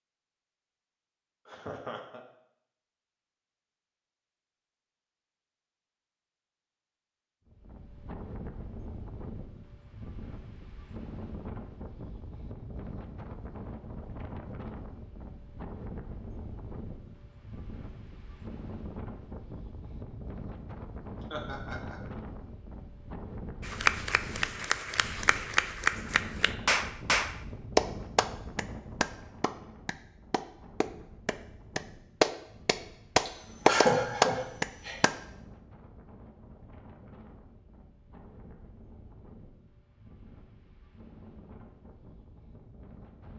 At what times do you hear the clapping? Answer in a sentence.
You can hear the clapping from 23.6 to 35.1 s.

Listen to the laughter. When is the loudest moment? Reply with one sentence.
The loudest moment of the laughter is at 34 seconds.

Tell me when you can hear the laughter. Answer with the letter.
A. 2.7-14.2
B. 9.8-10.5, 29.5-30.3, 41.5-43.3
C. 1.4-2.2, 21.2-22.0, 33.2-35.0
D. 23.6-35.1
C.